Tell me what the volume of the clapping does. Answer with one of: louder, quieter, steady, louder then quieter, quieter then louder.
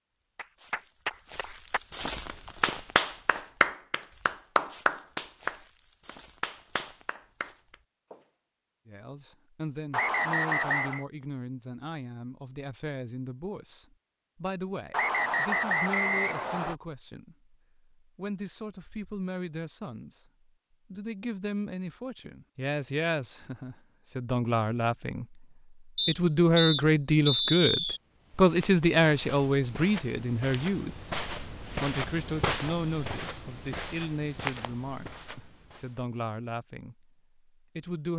louder then quieter.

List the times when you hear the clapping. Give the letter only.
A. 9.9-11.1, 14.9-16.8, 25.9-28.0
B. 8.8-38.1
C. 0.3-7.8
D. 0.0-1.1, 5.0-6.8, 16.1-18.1
C.